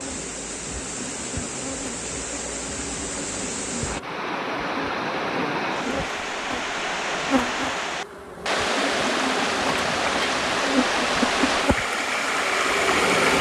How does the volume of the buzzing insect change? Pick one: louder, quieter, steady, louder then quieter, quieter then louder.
louder.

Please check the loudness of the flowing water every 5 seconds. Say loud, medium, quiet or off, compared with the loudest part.
medium, loud, loud.